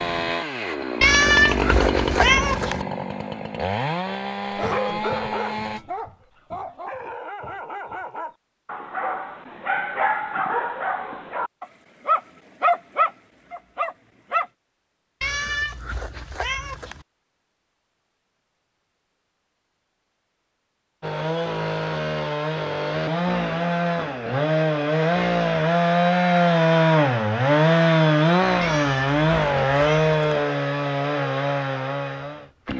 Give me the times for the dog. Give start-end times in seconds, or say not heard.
4.5-14.4.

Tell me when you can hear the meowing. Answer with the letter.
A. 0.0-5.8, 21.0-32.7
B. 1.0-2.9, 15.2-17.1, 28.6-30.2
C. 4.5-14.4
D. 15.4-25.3
B.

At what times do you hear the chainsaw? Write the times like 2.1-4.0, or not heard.
0.0-5.8, 21.0-32.7.